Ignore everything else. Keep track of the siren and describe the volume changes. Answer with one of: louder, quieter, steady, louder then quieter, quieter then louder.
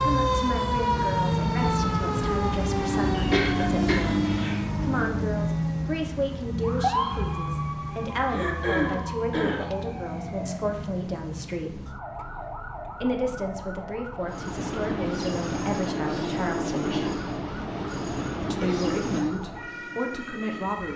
quieter.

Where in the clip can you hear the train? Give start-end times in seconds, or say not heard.
14.2-20.9.